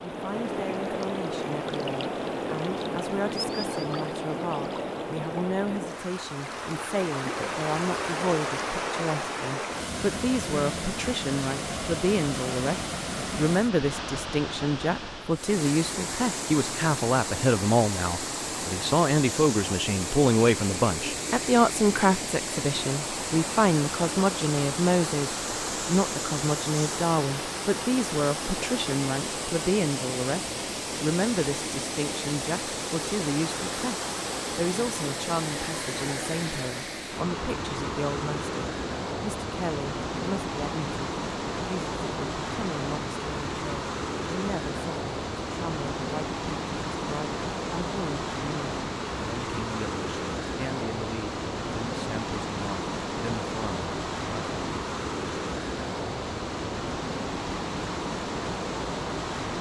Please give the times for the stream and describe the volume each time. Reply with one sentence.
The stream can be heard from 0.0 to 59.5 s, at a steady volume.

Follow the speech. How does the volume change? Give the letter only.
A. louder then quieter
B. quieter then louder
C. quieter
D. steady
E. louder
A.